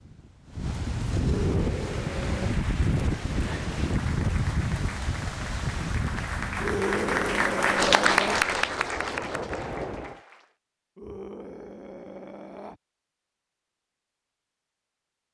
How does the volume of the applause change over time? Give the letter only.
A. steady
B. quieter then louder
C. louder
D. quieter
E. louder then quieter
E.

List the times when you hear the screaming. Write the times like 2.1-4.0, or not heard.
1.2-2.6, 6.6-8.4, 10.9-12.8.